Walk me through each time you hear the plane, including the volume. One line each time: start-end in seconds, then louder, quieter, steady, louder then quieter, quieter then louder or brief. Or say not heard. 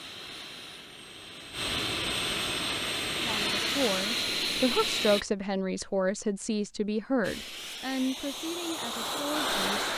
0.0-5.2 louder
7.2-9.9 brief.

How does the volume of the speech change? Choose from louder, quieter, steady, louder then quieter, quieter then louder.
quieter.